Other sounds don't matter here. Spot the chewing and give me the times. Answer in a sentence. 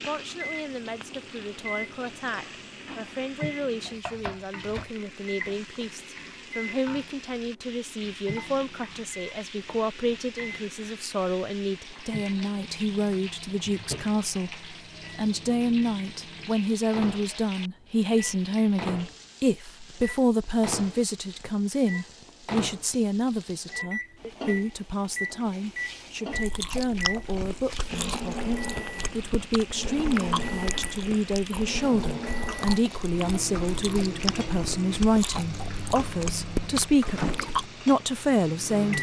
You can hear the chewing from 26.3 to 37.7 s.